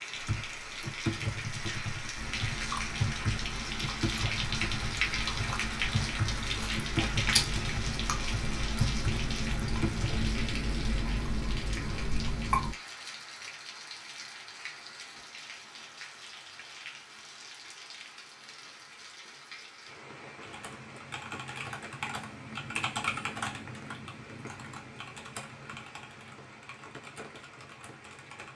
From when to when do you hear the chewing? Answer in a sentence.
You can hear the chewing from 2.1 to 12.8 s.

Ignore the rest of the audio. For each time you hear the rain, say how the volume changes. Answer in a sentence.
The rain can be heard from 0.0 to 28.5 s, getting quieter.